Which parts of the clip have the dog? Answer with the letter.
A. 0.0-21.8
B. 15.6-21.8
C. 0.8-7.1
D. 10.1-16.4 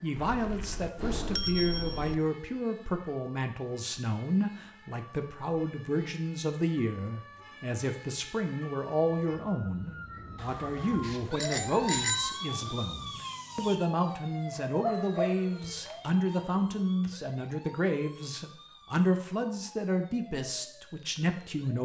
D.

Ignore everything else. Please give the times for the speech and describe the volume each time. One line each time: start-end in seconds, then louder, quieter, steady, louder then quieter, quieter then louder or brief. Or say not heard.
0.0-21.8 steady.